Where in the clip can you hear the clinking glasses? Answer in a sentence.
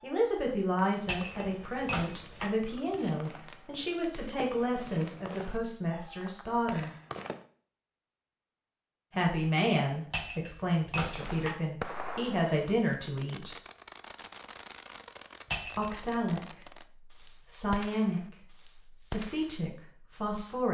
You can hear the clinking glasses from 1.1 to 2.5 s, from 10.1 to 11.6 s and from 15.5 to 16.0 s.